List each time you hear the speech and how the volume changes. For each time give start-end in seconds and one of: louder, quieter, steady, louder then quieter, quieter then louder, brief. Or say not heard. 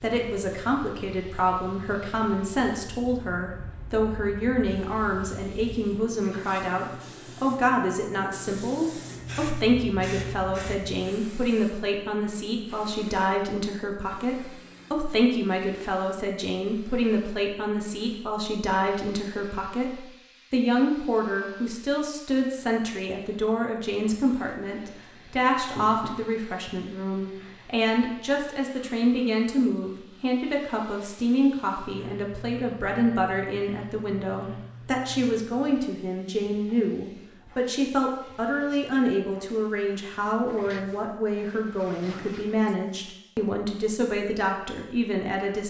0.0-45.6 steady.